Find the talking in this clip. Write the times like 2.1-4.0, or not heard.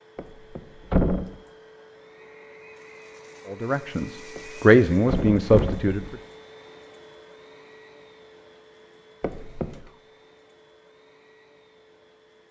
3.5-6.2.